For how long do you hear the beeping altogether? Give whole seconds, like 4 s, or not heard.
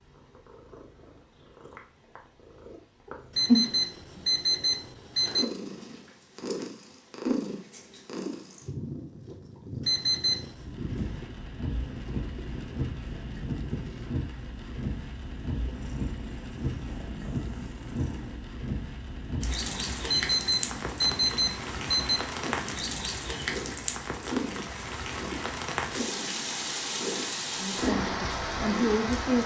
5 s.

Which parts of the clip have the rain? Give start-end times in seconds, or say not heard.
10.5-29.4.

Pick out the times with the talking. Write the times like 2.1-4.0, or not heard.
27.6-29.4.